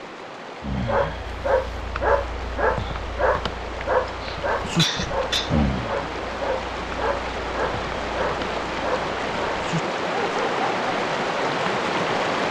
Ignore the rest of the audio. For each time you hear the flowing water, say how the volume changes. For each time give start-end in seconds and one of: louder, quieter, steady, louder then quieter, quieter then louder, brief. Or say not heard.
0.0-12.4 louder.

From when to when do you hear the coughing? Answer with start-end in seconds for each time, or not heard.
4.0-5.5.